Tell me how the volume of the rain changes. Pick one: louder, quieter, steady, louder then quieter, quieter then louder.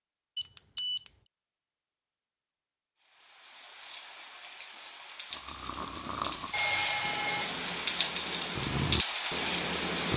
louder.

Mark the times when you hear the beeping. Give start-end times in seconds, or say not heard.
0.3-1.1, 6.5-7.5.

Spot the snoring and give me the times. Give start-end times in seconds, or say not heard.
5.3-10.1.